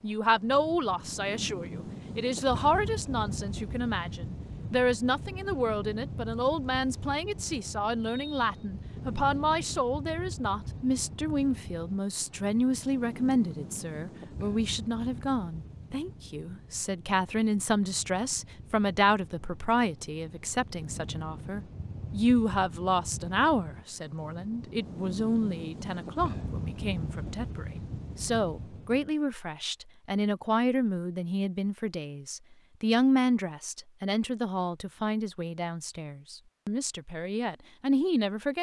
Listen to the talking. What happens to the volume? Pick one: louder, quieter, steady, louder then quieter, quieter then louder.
steady.